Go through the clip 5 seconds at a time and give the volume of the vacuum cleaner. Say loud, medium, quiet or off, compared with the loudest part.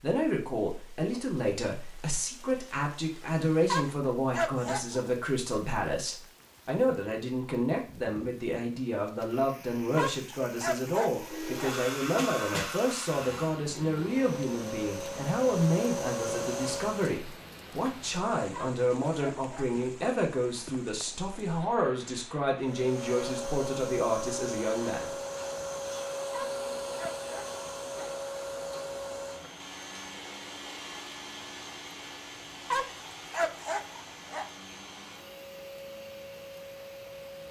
off, off, loud, loud, loud, loud, medium, medium.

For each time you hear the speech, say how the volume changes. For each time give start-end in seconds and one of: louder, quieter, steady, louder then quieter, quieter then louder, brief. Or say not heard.
0.0-25.1 steady.